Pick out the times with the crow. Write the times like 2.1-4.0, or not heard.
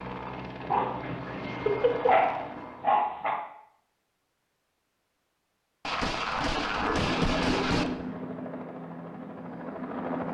not heard.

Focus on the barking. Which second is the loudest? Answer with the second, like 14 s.
2 s.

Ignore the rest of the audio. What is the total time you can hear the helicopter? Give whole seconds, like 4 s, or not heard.
6 s.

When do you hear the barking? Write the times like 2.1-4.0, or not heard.
0.6-3.5, 6.5-8.0.